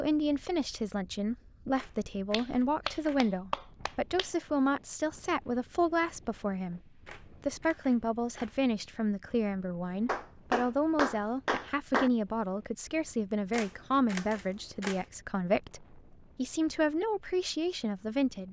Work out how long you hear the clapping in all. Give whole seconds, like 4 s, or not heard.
4 s.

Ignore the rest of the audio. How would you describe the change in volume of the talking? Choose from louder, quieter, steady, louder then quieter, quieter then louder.
steady.